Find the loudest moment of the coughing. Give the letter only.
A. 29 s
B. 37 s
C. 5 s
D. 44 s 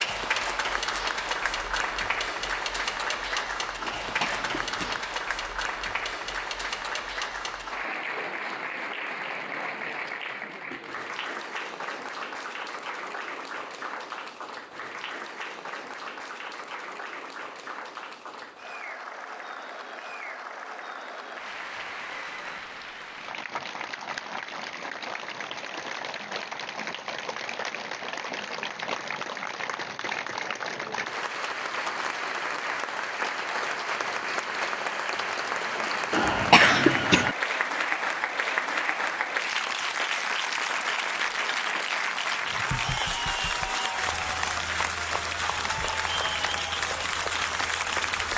B.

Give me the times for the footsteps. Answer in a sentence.
You can't hear the footsteps here.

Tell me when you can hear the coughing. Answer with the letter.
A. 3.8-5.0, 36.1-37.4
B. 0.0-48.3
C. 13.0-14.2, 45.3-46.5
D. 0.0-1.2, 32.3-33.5
A.